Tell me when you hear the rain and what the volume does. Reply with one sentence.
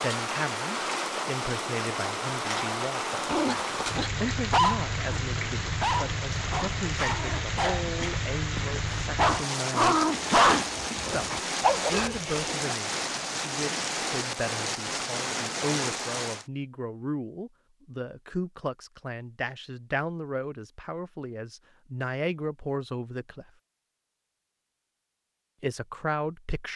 You can hear the rain from 0.0 to 16.4 s, at a steady volume.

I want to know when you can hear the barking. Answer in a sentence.
You can hear the barking from 3.2 to 12.5 s.